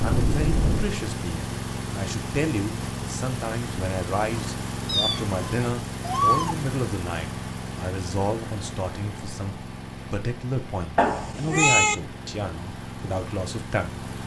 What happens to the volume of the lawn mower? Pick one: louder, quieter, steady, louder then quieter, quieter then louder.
quieter.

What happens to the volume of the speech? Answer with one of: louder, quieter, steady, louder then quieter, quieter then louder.
steady.